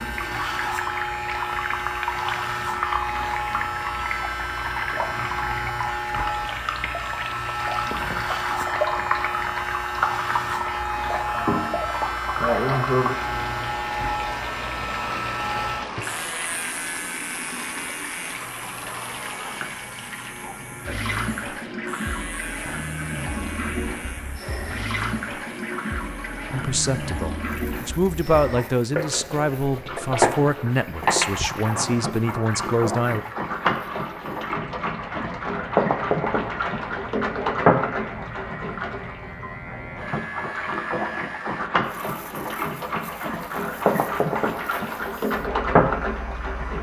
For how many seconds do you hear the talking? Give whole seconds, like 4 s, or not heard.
7 s.